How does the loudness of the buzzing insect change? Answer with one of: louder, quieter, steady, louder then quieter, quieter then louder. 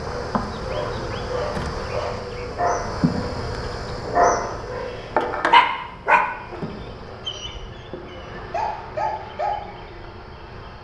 quieter.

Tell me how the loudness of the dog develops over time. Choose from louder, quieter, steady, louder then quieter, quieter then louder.
louder then quieter.